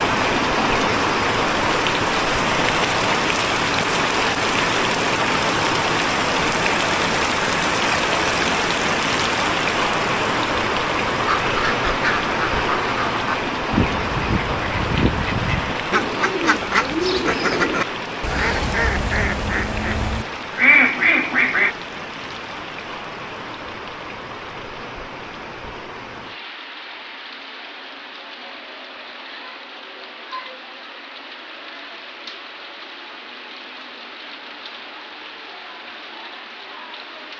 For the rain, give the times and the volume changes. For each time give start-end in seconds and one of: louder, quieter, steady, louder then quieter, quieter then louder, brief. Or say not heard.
0.0-37.3 quieter.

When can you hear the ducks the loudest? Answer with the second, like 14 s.
21 s.